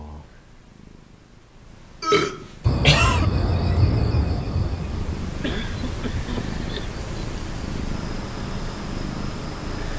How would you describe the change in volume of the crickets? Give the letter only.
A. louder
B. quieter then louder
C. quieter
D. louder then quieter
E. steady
C.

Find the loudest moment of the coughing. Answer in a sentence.
The loudest moment of the coughing is at 3 seconds.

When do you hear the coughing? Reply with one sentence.
You can hear the coughing from 2.0 to 3.3 s and from 5.4 to 7.0 s.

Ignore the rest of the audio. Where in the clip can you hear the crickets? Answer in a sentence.
The crickets can be heard from 2.6 to 9.9 s.